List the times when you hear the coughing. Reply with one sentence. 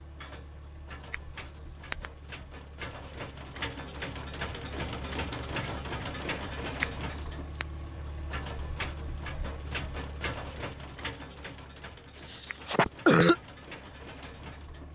The coughing can be heard from 12.2 to 13.4 s.